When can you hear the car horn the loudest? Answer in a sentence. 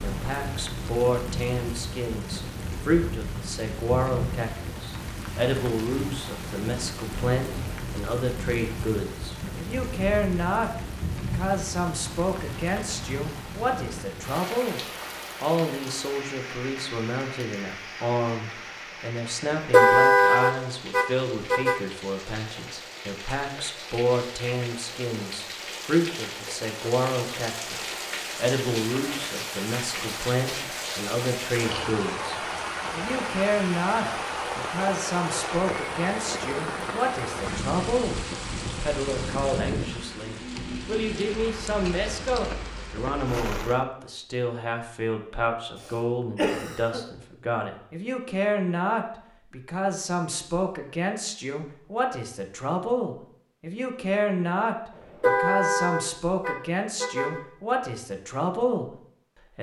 The volume of the car horn peaks at 20 seconds.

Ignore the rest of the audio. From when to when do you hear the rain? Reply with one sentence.
The rain can be heard from 0.0 to 43.9 s.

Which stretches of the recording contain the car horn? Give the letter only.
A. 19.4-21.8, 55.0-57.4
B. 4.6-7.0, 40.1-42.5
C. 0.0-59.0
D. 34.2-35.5
A.